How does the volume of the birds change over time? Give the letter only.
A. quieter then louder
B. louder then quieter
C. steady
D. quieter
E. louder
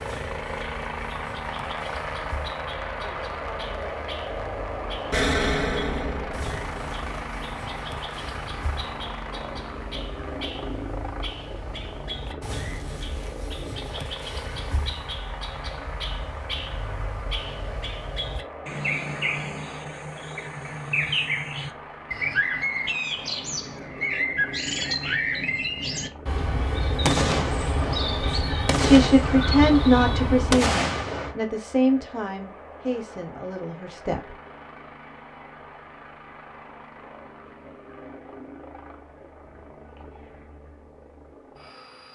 E.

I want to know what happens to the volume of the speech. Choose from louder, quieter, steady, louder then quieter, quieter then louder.
quieter.